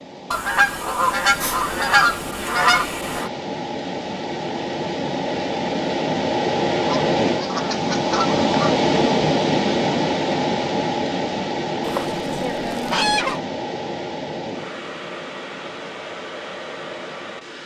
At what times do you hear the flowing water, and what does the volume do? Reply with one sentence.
You can hear the flowing water from 0.0 to 17.6 s, getting louder then quieter.